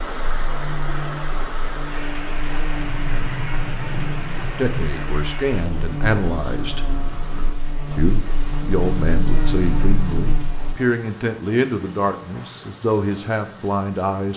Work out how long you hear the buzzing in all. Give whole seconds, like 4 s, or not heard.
11 s.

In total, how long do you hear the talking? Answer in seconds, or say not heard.
9 s.